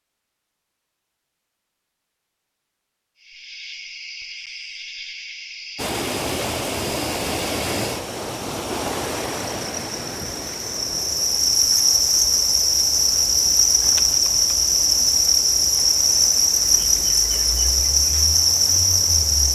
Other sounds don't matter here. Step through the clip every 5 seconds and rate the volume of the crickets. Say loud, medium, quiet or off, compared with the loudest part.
quiet, quiet, loud, loud.